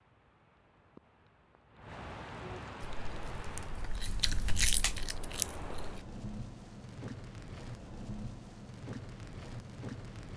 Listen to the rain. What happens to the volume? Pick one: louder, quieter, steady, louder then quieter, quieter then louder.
louder.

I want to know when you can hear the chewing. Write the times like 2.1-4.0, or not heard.
2.8-6.0.